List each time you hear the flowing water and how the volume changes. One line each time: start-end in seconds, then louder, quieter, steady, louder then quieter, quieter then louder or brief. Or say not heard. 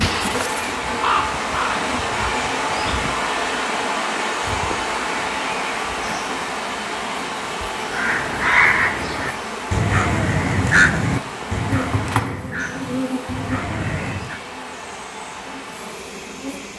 0.0-16.7 quieter.